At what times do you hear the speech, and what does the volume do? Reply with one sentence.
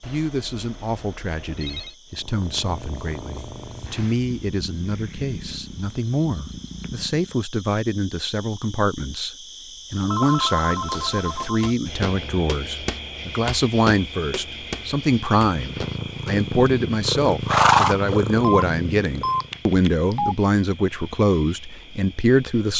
The speech can be heard from 0.0 to 22.7 s, getting louder.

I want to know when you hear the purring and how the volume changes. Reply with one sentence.
The purring can be heard from 2.1 to 7.4 s, at a steady volume; and from 15.4 to 19.6 s, getting louder then quieter.